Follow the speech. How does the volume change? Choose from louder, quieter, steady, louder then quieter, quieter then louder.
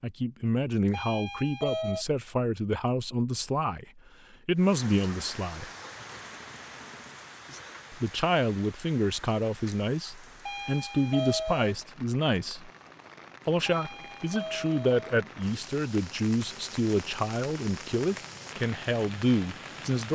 steady.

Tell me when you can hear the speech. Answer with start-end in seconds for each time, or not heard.
0.0-5.7, 7.9-12.7, 13.4-20.0.